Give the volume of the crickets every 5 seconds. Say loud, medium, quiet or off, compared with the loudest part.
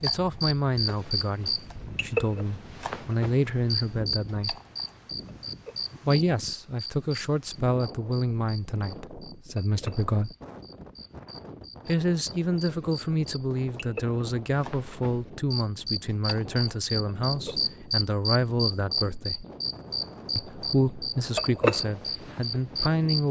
loud, medium, quiet, loud, loud.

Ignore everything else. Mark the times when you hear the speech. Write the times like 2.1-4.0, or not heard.
0.0-4.5, 6.0-10.3, 11.8-19.4, 20.4-23.2.